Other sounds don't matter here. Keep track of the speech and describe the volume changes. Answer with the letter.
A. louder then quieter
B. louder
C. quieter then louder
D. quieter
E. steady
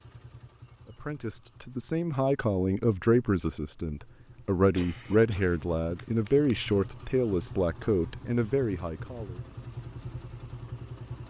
E.